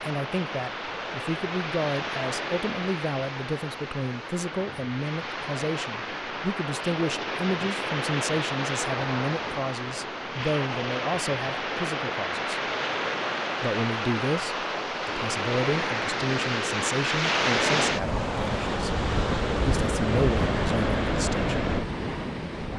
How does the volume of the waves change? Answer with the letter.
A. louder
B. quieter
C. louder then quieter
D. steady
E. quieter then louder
A.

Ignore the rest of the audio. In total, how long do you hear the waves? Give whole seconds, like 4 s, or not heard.
23 s.